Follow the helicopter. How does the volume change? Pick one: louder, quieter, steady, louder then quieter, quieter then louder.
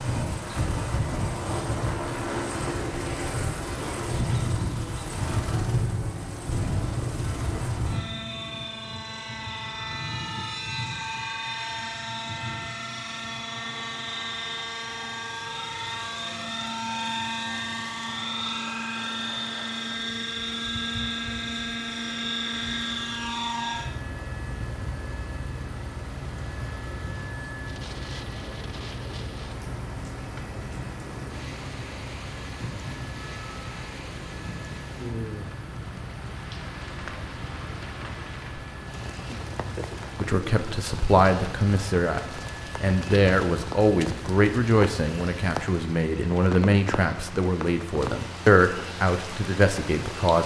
quieter.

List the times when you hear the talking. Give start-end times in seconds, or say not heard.
40.1-50.4.